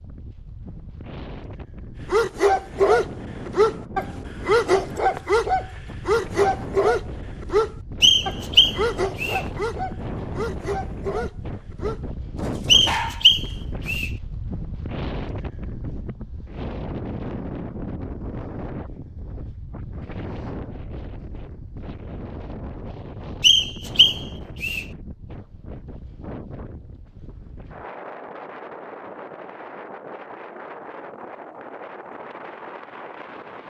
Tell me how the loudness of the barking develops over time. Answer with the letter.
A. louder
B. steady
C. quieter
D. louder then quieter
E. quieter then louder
C.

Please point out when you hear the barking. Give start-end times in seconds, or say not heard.
2.0-13.5.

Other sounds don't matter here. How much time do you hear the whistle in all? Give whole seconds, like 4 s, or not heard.
4 s.